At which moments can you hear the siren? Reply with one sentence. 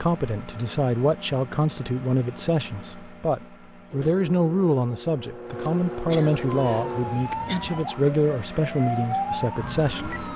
You can hear the siren from 6.5 to 10.3 s.